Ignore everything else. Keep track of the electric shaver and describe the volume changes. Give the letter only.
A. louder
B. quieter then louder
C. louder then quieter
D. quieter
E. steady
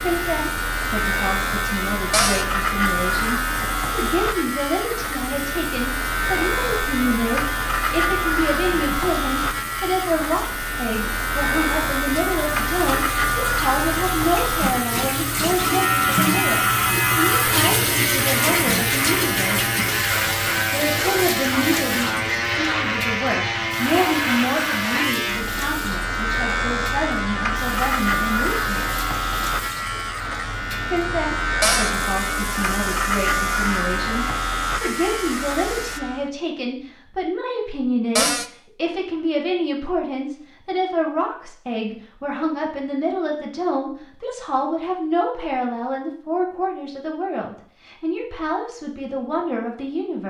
E.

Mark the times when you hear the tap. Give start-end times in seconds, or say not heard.
0.0-36.0.